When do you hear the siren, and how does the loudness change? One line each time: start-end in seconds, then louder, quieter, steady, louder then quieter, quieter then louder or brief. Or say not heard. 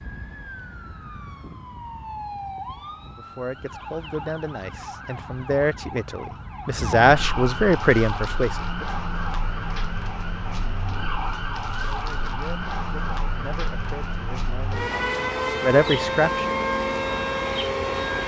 0.0-18.2 louder.